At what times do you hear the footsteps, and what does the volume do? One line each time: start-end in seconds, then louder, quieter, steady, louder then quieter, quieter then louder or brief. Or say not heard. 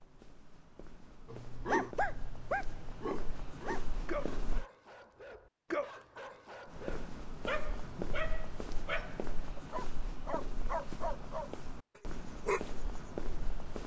0.0-4.7 louder
6.7-13.8 steady.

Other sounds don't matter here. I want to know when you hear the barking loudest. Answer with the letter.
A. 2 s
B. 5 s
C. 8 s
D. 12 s
A.